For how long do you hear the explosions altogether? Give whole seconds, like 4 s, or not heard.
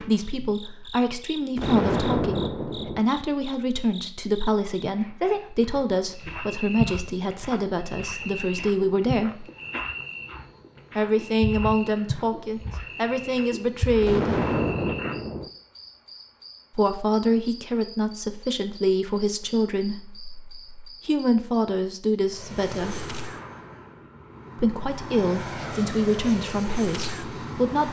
3 s.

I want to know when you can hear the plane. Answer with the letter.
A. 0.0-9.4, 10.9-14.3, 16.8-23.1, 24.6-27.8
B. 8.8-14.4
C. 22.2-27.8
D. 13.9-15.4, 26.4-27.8
C.